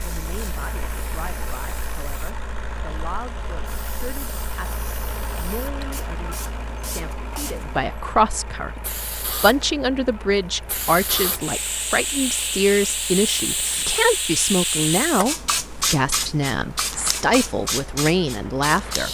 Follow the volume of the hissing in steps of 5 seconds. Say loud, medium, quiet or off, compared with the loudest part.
quiet, medium, loud, loud.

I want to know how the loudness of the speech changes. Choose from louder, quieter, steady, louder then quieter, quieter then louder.
louder.